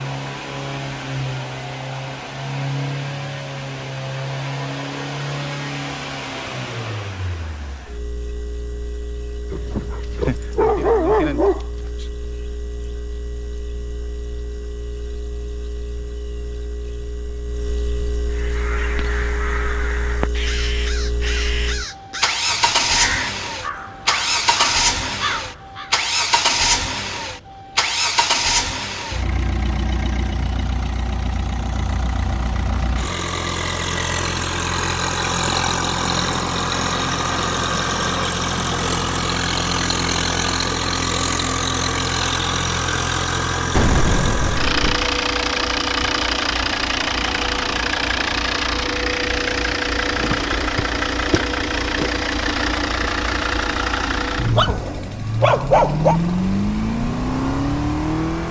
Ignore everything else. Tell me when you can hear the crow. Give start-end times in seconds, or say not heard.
18.3-25.9.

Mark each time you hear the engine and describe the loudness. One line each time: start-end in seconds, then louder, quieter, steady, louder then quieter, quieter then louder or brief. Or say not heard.
0.0-58.4 louder.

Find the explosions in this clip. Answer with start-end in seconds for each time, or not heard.
43.8-45.0.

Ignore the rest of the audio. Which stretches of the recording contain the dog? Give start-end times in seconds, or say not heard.
9.5-12.1, 54.4-56.2.